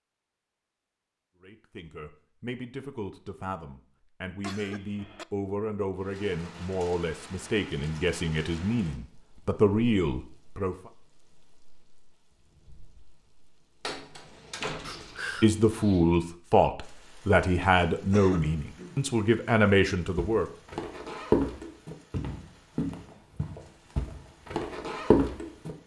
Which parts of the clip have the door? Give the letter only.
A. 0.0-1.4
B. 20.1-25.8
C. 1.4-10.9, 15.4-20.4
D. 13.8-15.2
D.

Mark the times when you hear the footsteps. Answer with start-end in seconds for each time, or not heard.
20.1-25.8.